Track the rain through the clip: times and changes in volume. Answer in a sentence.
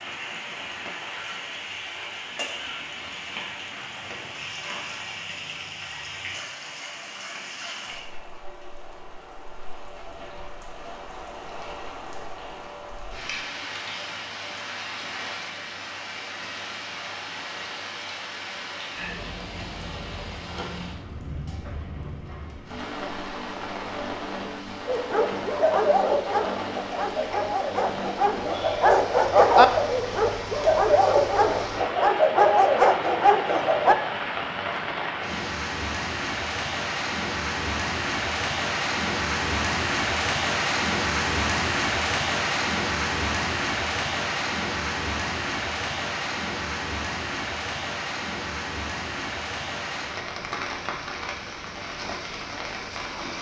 You can hear the rain from 0.0 to 53.3 s, getting louder.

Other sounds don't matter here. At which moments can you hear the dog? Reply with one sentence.
The dog can be heard from 24.9 to 34.0 s.